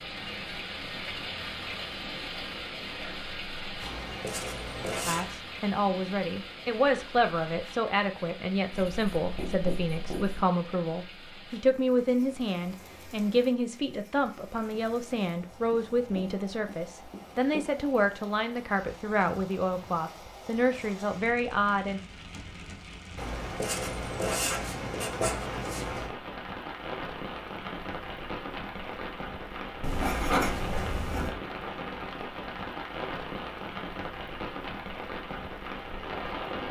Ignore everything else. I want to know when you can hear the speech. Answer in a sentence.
The speech can be heard from 5.0 to 22.0 s.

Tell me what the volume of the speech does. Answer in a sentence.
The volume of the speech stays about the same.